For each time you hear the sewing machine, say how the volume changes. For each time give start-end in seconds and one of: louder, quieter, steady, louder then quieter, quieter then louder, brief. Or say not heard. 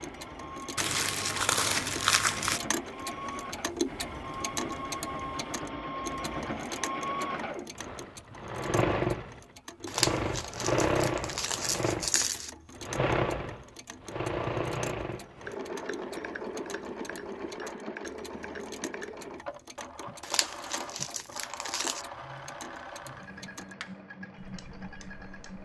0.0-25.5 louder then quieter.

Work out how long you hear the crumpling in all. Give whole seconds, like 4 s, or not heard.
6 s.